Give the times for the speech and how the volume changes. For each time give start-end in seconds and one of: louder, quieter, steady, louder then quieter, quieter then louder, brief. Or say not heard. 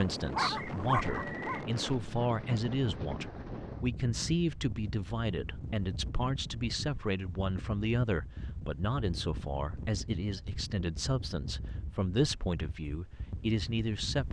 0.0-14.2 steady.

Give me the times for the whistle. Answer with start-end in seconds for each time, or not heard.
0.6-1.6.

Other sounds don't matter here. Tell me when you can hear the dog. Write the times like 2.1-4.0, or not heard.
0.0-1.6.